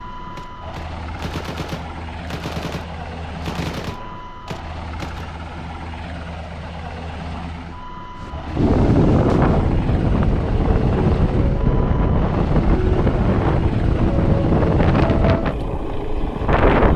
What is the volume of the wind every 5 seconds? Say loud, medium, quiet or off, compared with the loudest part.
off, loud, loud, loud.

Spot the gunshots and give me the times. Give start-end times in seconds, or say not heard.
0.3-5.2.